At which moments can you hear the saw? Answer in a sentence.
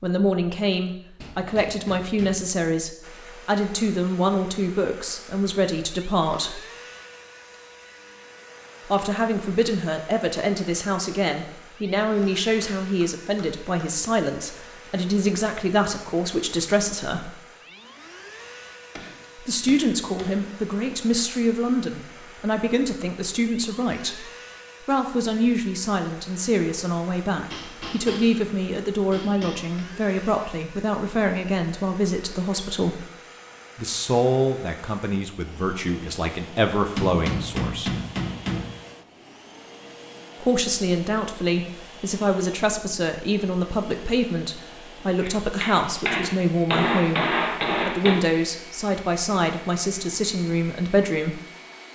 You can't hear the saw here.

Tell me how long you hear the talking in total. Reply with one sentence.
The talking can be heard for 44 seconds in total.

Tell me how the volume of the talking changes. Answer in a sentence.
The loudness of the talking stays about the same.